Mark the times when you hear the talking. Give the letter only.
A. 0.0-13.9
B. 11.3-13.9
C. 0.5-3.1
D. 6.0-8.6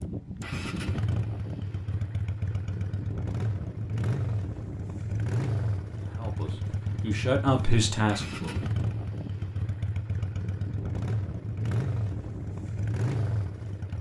D.